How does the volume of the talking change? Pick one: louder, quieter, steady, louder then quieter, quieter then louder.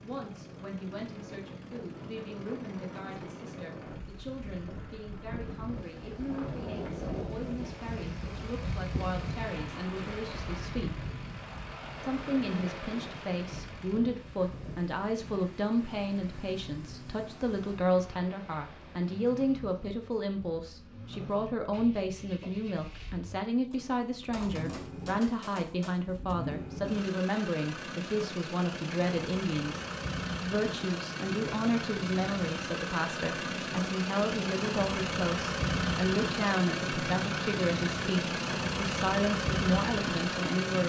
louder.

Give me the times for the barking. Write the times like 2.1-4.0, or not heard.
not heard.